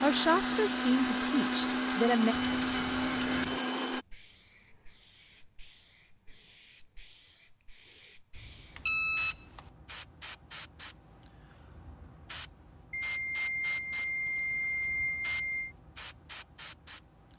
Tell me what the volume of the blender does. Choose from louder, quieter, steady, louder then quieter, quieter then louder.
steady.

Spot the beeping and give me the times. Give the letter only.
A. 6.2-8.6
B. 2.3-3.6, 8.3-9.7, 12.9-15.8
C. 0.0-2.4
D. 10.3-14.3
B.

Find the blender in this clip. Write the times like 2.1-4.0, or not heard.
0.0-4.0.